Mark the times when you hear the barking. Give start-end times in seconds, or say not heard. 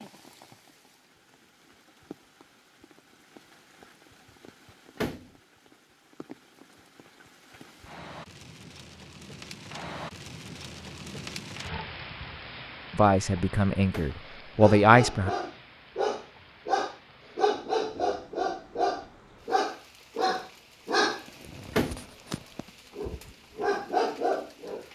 14.6-24.8.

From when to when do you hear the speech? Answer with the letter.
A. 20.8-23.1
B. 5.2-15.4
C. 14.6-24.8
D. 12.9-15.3
D.